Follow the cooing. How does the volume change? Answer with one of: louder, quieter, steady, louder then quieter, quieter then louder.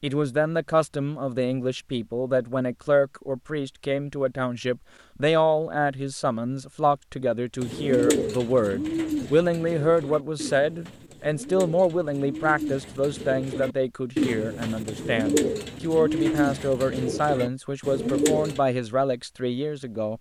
quieter then louder.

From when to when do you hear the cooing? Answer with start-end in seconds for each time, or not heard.
7.6-18.6.